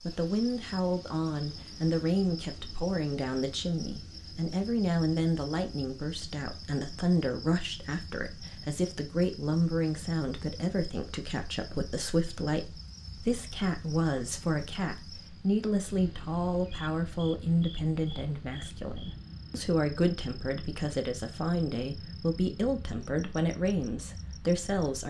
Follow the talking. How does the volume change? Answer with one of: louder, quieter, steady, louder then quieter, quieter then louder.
steady.